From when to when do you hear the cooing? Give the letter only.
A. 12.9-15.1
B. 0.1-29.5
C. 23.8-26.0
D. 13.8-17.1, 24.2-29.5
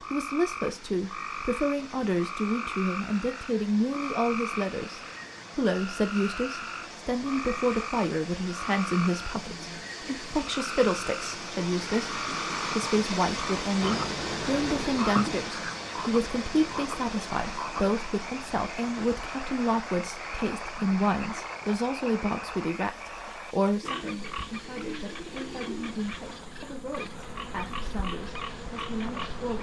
C.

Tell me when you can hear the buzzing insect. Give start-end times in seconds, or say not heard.
13.8-17.1, 24.2-29.5.